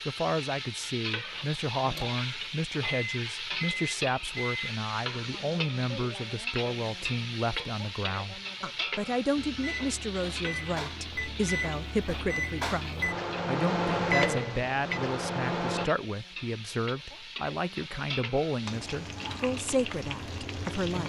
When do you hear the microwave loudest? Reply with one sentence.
The volume of the microwave peaks at 14 seconds.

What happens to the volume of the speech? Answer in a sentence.
The loudness of the speech stays about the same.